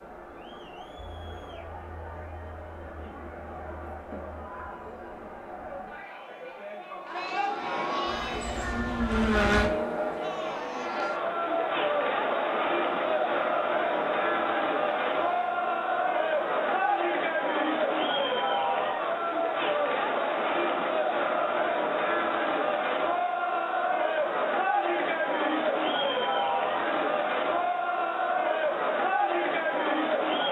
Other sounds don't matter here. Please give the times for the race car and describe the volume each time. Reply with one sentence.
You can hear the race car from 8.1 to 17.0 s, getting quieter.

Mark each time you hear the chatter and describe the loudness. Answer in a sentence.
You can hear the chatter from 0.0 to 30.4 s, getting louder.